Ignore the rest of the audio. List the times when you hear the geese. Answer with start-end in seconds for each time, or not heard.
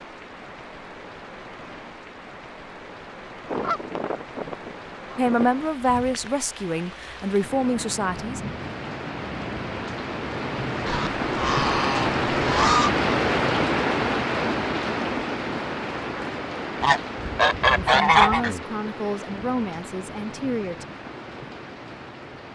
3.5-5.5, 10.8-12.9, 16.8-18.5.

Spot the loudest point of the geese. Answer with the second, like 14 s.
18 s.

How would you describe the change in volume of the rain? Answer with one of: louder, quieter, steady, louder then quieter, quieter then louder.
louder then quieter.